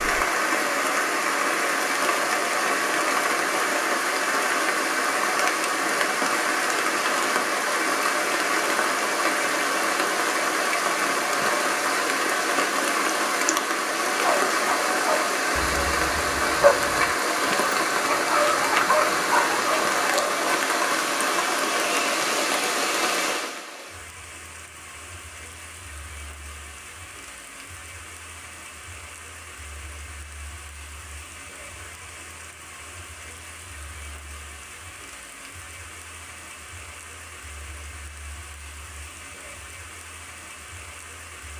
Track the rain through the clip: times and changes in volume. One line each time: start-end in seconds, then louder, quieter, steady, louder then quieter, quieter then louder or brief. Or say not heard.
0.0-41.5 quieter.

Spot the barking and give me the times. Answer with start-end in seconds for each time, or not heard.
14.2-20.6.